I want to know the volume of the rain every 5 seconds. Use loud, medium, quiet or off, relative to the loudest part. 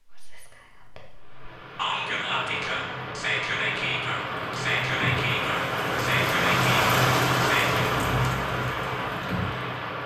medium, loud.